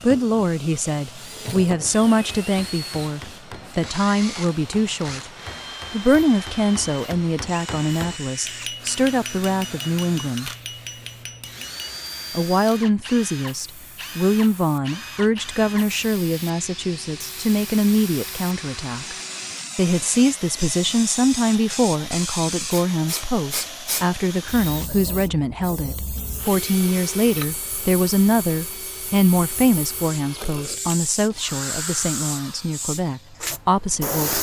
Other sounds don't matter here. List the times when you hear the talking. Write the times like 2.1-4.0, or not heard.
0.0-5.3, 5.9-10.5, 12.3-19.1, 19.8-34.3.